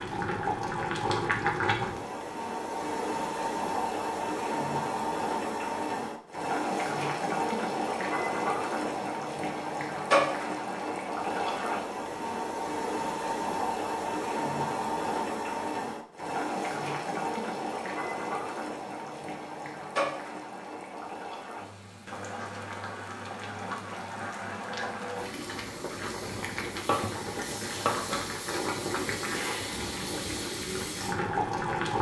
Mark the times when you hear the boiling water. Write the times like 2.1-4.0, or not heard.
0.0-31.9.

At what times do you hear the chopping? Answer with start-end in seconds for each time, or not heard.
26.2-27.9.